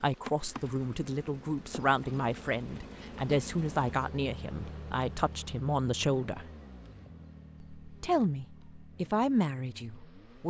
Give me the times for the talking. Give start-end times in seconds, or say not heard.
0.0-6.5, 7.8-10.4.